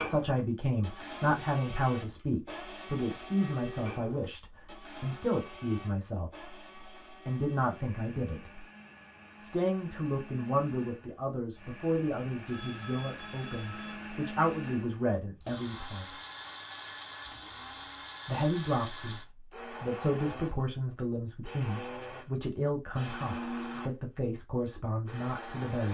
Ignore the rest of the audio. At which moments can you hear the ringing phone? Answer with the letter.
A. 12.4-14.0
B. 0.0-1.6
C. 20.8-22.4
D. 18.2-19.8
A.